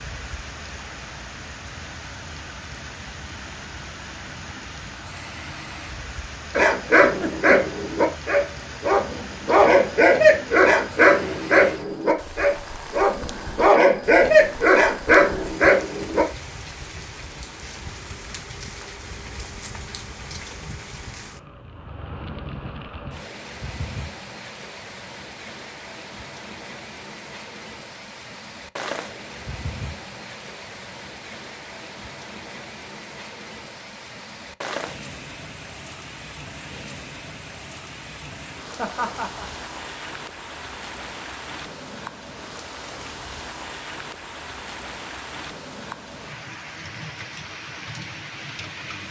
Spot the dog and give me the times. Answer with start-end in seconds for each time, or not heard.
6.5-16.2.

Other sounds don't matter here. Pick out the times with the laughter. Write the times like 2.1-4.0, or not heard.
7.0-7.8, 38.8-39.5.